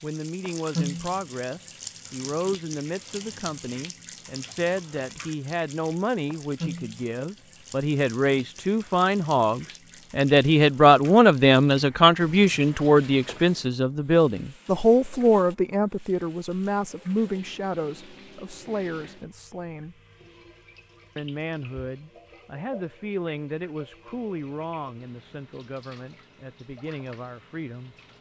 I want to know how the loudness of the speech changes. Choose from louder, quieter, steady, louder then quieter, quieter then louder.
louder then quieter.